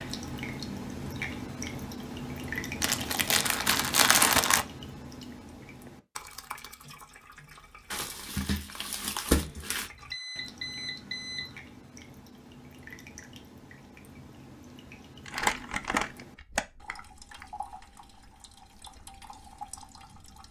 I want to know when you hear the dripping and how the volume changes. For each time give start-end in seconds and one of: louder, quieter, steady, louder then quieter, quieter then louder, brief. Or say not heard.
0.0-20.4 quieter.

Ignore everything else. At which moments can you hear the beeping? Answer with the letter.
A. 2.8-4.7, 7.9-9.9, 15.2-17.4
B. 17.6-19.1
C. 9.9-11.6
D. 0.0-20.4
C.